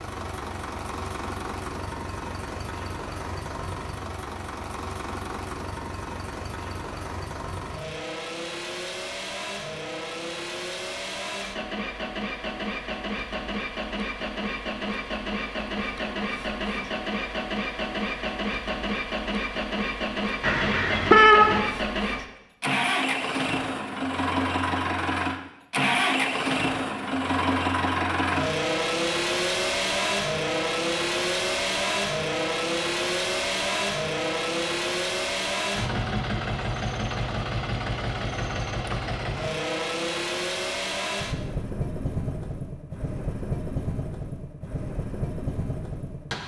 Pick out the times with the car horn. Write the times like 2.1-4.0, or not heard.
20.4-21.6.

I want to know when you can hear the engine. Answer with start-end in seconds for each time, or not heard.
0.0-46.4.